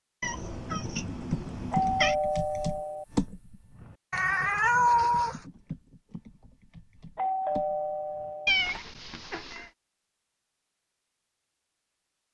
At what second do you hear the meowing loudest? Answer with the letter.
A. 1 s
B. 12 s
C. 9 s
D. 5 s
D.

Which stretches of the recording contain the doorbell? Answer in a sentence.
The doorbell can be heard from 1.7 to 3.0 s and from 7.2 to 8.5 s.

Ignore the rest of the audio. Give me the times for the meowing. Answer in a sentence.
The meowing can be heard from 0.2 to 2.1 s, from 4.1 to 5.4 s and from 8.4 to 9.7 s.